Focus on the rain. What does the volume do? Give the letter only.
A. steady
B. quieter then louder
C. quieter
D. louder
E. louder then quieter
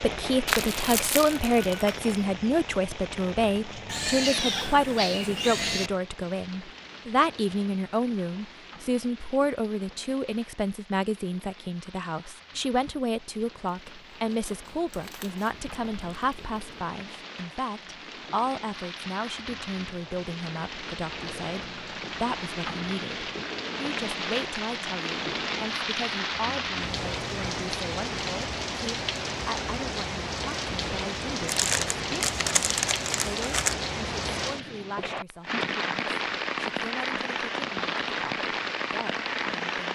B.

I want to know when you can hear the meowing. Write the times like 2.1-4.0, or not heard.
3.9-5.9, 15.5-16.7, 26.9-27.6.